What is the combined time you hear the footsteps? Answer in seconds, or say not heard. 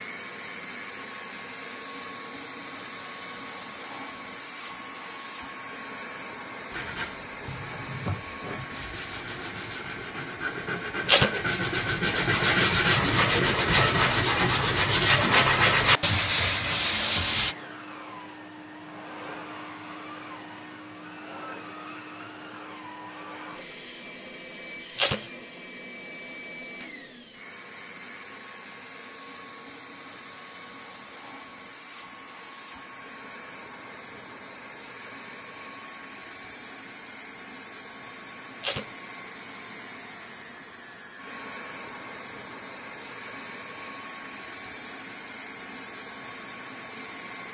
not heard.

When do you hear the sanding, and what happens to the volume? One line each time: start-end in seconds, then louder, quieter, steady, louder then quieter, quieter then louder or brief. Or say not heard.
6.7-17.6 louder.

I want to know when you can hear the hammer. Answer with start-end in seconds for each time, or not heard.
not heard.